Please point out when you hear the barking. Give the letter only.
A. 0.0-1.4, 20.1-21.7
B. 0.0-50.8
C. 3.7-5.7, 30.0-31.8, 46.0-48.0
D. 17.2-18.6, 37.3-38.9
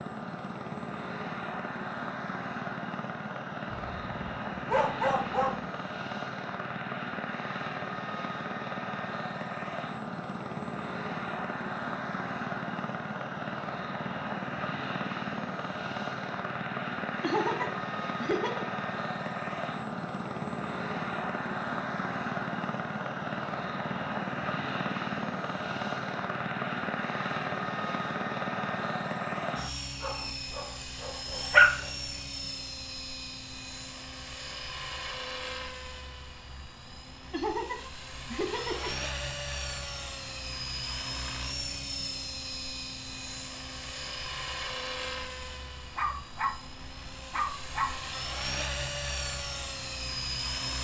C.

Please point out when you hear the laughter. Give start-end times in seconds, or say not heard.
17.2-18.6, 37.3-38.9.